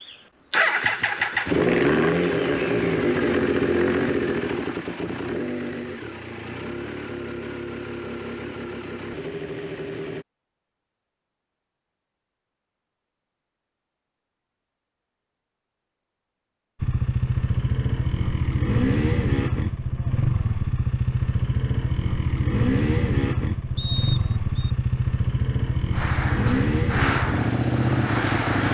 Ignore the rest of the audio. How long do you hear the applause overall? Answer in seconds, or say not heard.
3 s.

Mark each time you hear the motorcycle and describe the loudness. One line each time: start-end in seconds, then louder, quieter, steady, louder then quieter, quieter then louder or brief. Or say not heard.
0.0-10.2 quieter
16.8-28.6 steady.